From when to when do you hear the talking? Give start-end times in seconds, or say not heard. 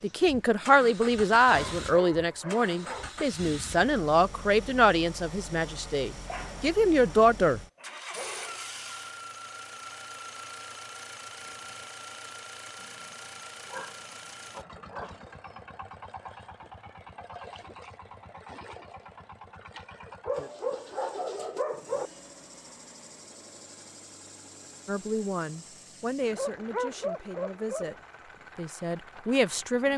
0.0-7.6, 24.9-27.9, 28.6-29.9.